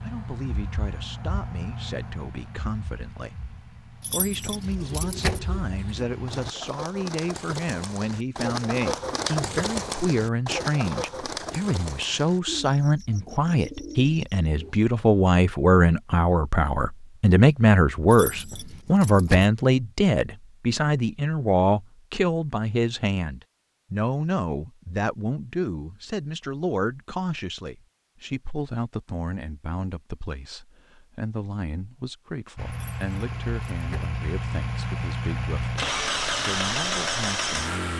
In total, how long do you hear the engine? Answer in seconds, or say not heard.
12 s.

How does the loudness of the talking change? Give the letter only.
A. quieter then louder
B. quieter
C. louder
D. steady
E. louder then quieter
E.